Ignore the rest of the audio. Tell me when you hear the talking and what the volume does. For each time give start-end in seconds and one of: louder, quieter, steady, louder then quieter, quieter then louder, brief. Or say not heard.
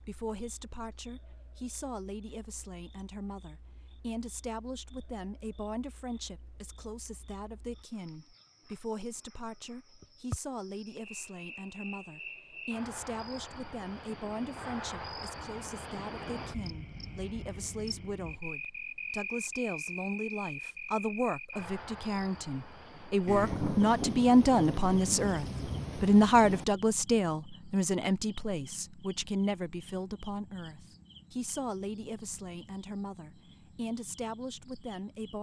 0.0-35.3 louder then quieter.